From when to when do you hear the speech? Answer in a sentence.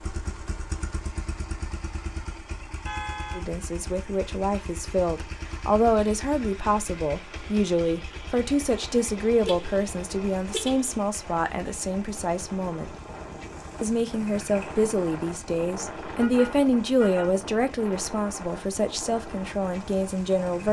The speech can be heard from 3.4 to 12.9 s and from 13.8 to 20.6 s.